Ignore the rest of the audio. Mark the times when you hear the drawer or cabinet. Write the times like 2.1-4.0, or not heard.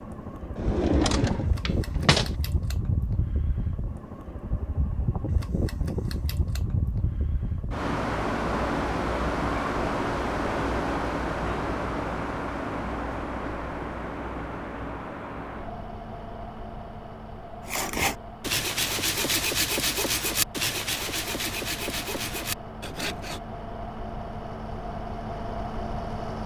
0.6-2.4.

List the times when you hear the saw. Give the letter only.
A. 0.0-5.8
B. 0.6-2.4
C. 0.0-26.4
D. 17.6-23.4
D.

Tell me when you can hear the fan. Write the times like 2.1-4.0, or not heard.
0.0-26.4.